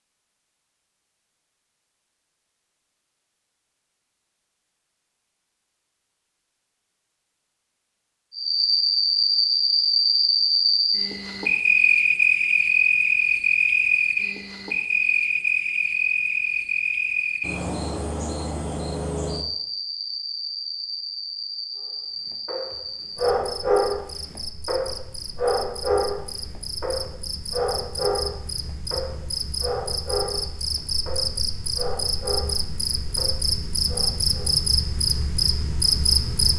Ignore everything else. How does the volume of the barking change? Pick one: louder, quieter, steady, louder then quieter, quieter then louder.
quieter.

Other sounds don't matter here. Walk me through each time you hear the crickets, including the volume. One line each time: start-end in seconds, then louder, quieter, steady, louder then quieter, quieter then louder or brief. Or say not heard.
8.3-36.5 quieter then louder.